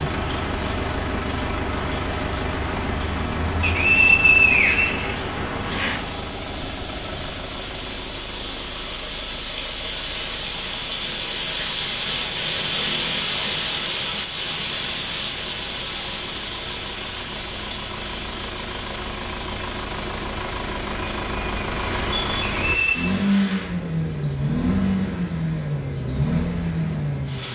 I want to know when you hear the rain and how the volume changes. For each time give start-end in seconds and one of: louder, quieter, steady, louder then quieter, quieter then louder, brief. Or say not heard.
0.0-27.5 louder then quieter.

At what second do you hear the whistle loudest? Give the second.
4 s.